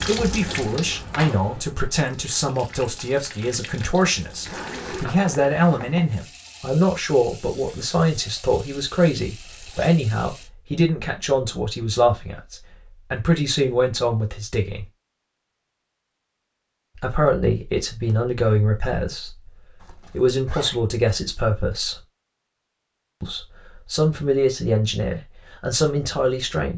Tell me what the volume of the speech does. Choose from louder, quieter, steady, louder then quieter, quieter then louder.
steady.